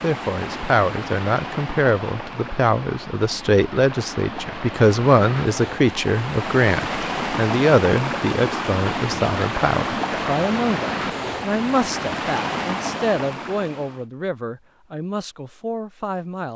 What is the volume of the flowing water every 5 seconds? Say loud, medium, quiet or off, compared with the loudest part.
medium, loud, loud, off.